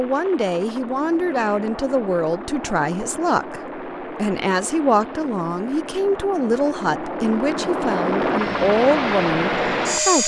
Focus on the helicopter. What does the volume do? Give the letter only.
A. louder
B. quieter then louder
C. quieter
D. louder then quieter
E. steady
A.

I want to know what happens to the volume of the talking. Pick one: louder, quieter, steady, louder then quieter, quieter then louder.
steady.